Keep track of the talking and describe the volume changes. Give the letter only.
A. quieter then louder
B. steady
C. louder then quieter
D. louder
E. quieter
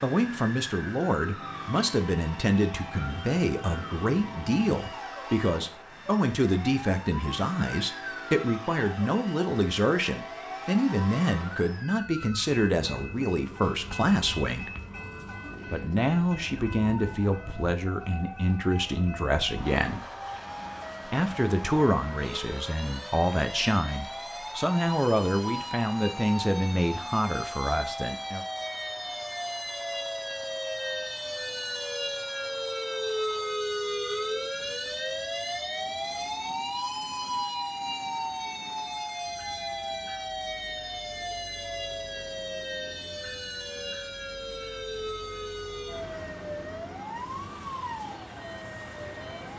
B.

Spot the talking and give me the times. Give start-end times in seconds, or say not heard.
0.0-14.7, 15.7-20.0, 21.1-28.4.